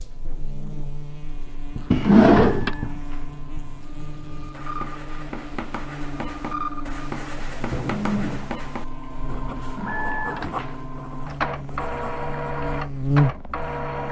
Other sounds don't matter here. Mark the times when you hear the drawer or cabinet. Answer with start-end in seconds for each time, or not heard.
1.9-2.8, 9.8-10.6.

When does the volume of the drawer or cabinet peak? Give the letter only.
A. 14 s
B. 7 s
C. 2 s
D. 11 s
C.